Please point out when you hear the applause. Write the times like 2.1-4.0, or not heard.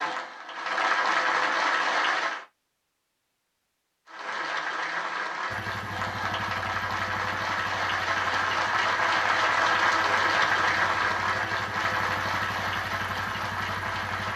0.0-2.5, 4.0-14.3.